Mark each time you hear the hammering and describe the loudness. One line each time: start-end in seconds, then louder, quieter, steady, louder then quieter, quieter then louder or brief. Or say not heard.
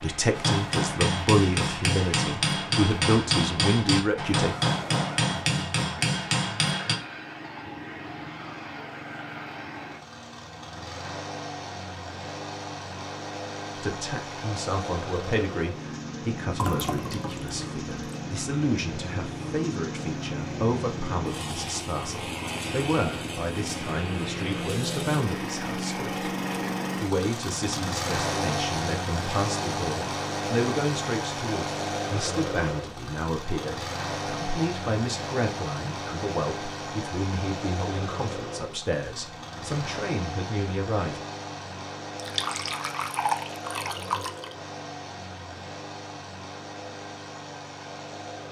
0.3-7.0 steady.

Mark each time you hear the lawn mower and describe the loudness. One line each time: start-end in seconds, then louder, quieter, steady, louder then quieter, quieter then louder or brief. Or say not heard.
0.0-48.4 louder then quieter.